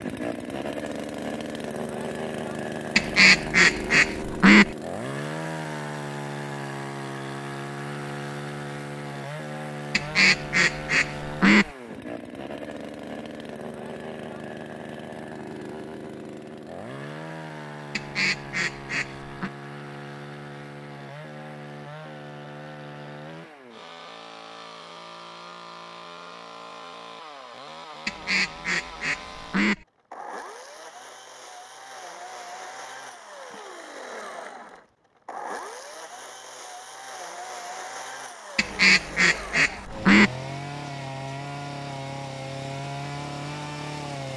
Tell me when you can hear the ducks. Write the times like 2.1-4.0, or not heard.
3.0-4.7, 9.9-11.7, 17.9-19.5, 28.1-29.9, 38.5-40.3.